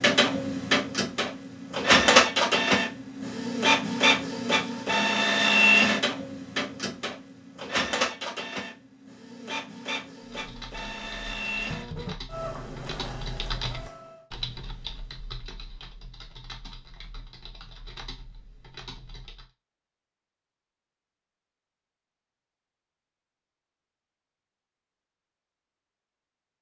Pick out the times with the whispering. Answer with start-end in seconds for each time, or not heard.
not heard.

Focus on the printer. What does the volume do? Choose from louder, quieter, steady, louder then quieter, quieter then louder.
quieter.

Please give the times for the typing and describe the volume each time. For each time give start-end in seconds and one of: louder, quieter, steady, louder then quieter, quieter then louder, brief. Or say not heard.
10.2-19.5 louder then quieter.